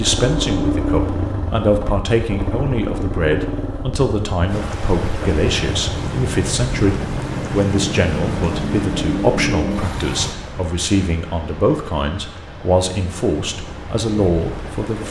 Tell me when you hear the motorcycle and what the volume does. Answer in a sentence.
The motorcycle can be heard from 0.0 to 10.3 s, getting quieter then louder.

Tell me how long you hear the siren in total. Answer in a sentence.
The siren can't be heard in this clip.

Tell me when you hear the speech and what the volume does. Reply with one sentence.
The speech can be heard from 0.0 to 15.0 s, at a steady volume.